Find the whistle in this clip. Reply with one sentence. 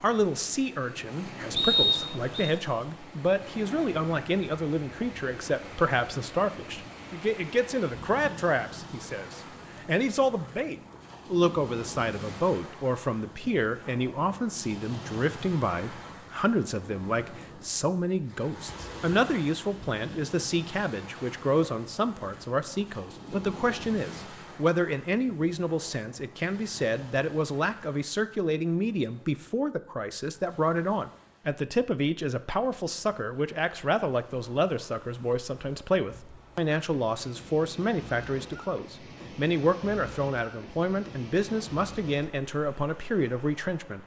You can hear the whistle from 1.6 to 2.5 s.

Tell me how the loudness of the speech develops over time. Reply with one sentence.
The loudness of the speech stays about the same.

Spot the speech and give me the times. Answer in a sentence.
You can hear the speech from 0.0 to 44.0 s.